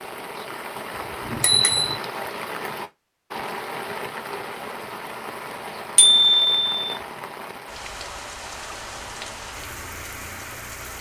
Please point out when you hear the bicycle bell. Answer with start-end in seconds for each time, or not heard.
1.2-1.9, 6.0-6.7.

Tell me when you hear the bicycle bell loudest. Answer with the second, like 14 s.
6 s.